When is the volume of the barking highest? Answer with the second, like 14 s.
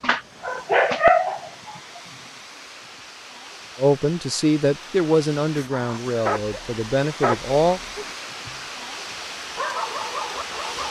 1 s.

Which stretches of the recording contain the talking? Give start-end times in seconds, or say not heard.
3.8-7.8.